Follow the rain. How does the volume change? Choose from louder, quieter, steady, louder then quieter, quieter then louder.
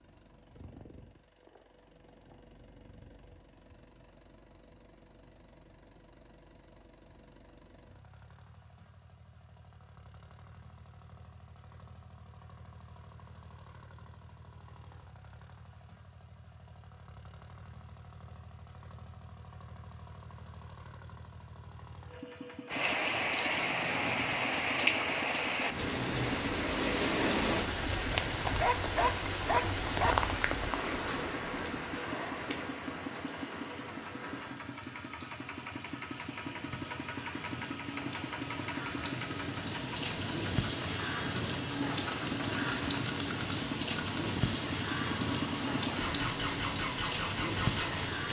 quieter then louder.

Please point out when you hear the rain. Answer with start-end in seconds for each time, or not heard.
22.7-48.2.